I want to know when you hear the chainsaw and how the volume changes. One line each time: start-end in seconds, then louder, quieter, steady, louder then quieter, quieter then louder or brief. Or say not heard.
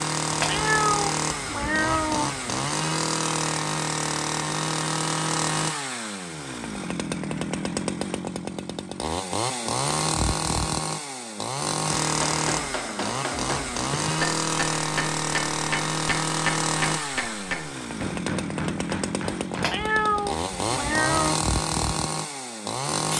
0.0-23.1 steady.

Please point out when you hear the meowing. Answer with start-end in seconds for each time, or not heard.
0.3-2.5, 19.5-21.4.